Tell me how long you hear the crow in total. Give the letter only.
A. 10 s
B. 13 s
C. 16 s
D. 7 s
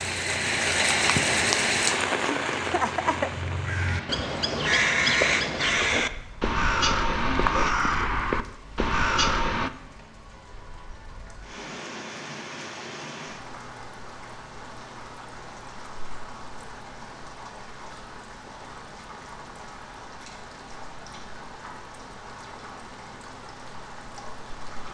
A.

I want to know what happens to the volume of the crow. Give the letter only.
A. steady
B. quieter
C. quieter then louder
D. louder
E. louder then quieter
D.